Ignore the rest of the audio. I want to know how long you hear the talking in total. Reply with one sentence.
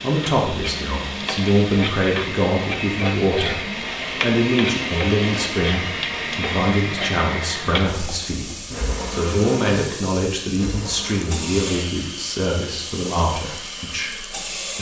The talking can be heard for 14 seconds in total.